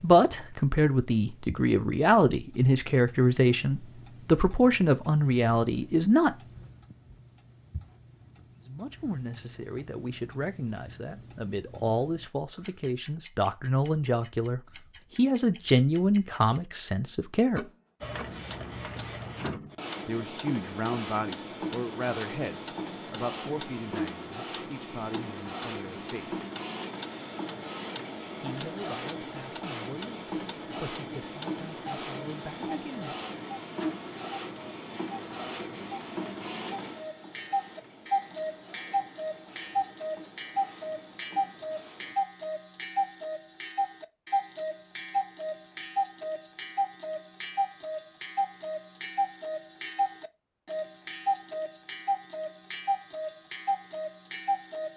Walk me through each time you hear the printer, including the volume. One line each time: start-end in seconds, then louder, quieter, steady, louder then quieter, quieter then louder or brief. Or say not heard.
18.0-42.1 quieter.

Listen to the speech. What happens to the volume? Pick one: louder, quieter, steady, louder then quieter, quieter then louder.
quieter.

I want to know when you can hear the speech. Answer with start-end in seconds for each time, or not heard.
0.0-6.3, 8.7-17.6, 20.1-26.5, 28.4-33.1.